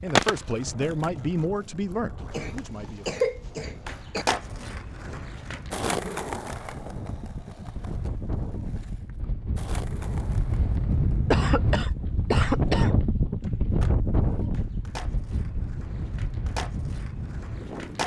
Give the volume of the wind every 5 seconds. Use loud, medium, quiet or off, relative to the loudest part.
quiet, medium, loud, medium.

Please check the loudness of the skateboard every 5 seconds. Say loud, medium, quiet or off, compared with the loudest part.
loud, medium, quiet, medium.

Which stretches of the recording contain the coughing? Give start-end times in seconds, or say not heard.
2.3-4.2, 11.3-12.9.